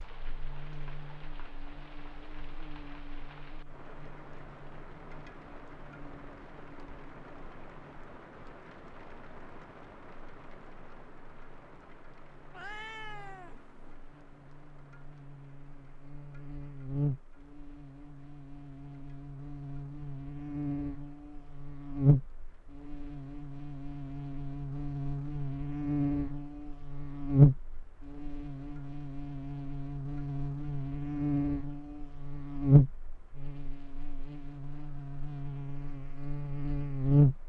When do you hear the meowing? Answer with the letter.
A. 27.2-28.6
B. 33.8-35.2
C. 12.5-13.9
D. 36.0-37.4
C.